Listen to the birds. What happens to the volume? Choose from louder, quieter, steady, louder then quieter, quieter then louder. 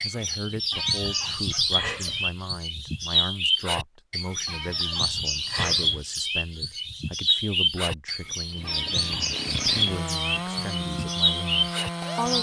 steady.